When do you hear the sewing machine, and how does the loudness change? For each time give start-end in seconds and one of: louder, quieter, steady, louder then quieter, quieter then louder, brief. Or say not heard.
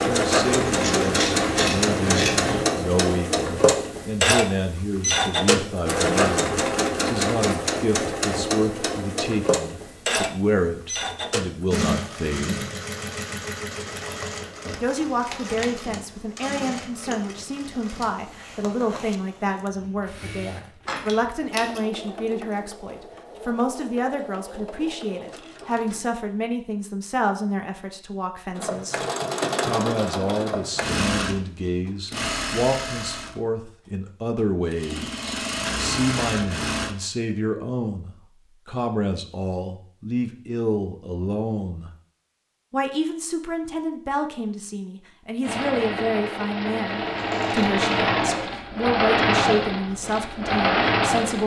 0.0-26.1 quieter
28.6-37.0 quieter then louder
45.4-51.4 louder.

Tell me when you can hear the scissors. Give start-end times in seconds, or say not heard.
0.5-2.6, 20.9-21.8, 47.0-47.9.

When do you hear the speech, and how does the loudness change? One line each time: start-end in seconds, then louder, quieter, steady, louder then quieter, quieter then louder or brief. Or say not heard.
0.0-12.7 steady
14.8-29.0 steady
29.6-41.9 steady
42.7-51.4 steady.